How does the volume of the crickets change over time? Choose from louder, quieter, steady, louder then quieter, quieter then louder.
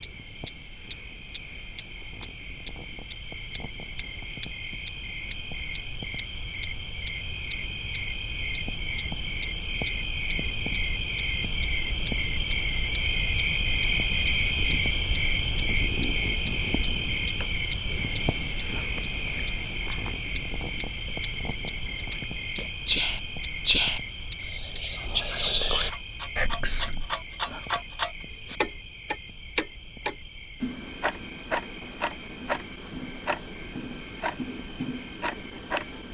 louder then quieter.